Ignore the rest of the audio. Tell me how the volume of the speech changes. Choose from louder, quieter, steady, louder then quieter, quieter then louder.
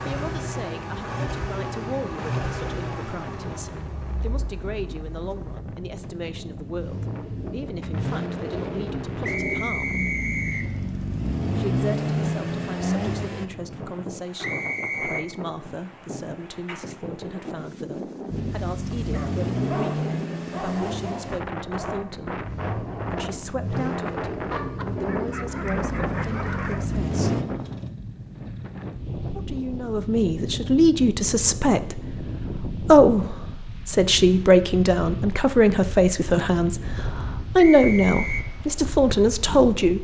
louder.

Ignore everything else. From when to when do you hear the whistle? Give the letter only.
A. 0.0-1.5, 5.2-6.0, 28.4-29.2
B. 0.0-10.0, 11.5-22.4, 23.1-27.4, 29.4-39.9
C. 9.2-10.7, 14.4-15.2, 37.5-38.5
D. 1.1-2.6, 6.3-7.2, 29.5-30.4
C.